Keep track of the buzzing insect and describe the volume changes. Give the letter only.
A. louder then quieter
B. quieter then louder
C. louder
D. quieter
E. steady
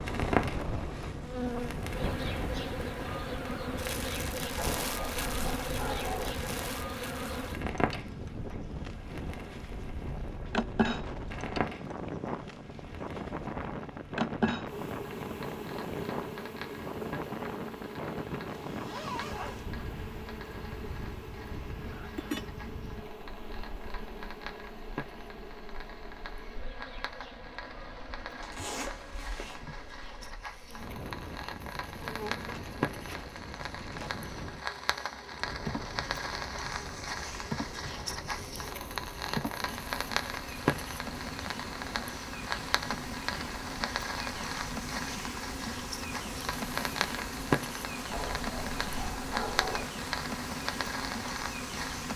B.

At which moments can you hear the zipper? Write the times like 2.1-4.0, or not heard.
18.6-19.6, 28.4-29.6.